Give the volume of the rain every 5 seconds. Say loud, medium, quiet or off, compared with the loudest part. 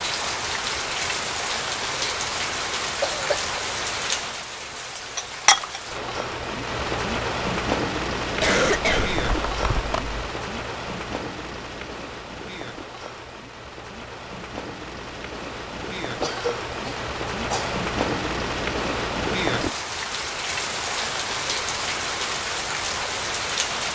loud, loud, medium, loud, loud.